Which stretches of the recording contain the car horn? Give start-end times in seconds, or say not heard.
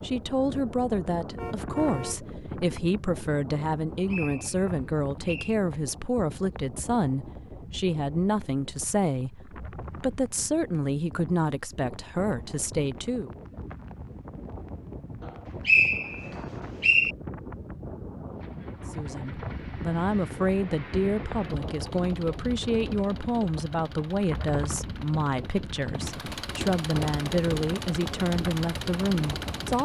1.4-2.2.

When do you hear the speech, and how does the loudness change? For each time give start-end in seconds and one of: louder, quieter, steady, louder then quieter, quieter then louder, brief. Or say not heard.
0.0-13.3 steady
18.9-29.8 steady.